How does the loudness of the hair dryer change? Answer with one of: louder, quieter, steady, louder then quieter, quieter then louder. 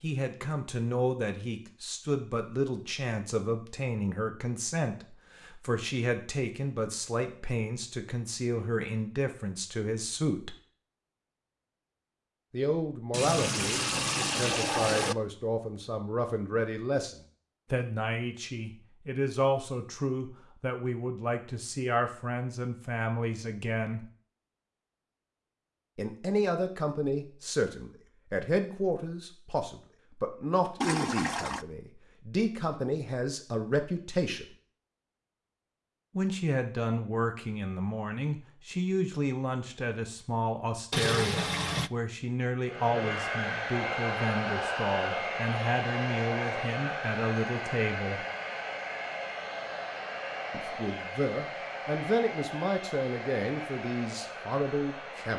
quieter.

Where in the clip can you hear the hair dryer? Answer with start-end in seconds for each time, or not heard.
42.6-55.3.